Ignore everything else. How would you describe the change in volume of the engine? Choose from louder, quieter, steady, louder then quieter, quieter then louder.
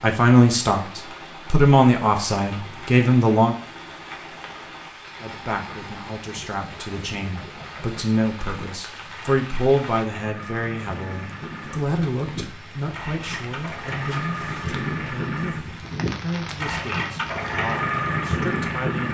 louder.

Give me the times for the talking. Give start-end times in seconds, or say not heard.
0.0-3.5, 5.2-19.0.